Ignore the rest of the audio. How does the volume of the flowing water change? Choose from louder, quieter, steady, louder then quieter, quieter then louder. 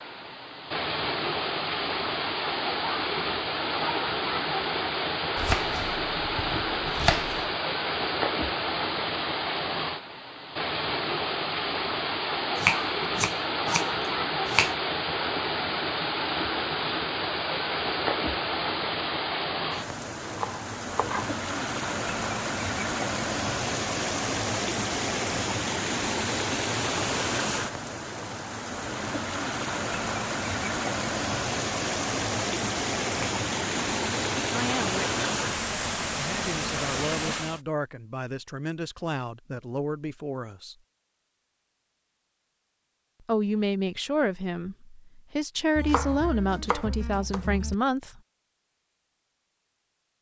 steady.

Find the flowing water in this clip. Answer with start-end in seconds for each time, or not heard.
0.0-37.6.